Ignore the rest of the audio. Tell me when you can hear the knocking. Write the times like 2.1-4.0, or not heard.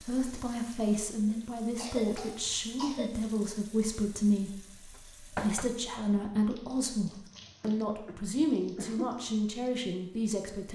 5.0-5.7.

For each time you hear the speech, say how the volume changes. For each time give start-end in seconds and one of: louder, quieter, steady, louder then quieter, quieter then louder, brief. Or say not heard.
0.0-10.7 steady.